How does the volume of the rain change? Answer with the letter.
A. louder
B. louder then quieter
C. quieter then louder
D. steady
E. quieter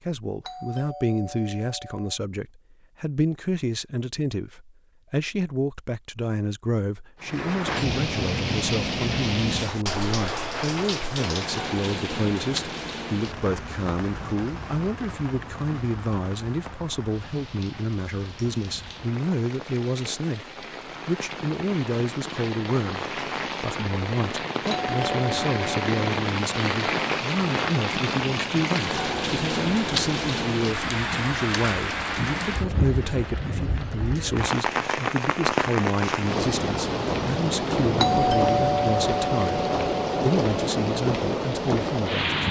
C.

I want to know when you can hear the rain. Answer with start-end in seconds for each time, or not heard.
7.2-42.4.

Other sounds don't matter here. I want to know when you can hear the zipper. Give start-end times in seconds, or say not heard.
not heard.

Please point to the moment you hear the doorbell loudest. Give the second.
38 s.